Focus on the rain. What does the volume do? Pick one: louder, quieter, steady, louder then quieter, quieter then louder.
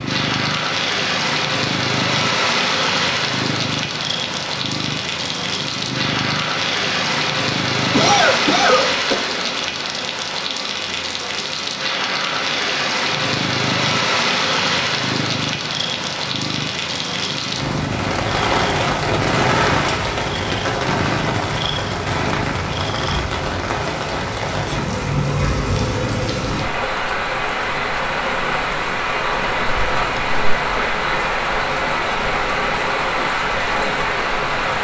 steady.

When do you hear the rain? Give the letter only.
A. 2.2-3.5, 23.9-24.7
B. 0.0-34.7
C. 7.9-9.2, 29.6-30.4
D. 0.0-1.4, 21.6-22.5
B.